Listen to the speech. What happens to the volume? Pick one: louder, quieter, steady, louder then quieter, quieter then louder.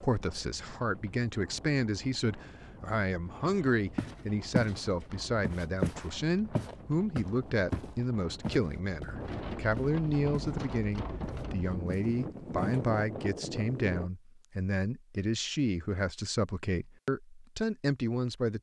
steady.